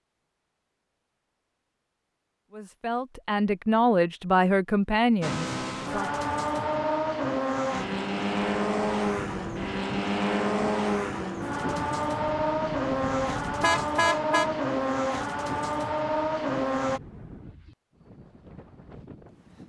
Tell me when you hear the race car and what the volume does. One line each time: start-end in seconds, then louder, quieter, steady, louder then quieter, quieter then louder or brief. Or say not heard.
5.2-17.0 steady.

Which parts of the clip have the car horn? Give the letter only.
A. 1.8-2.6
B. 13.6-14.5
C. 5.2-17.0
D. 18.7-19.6
B.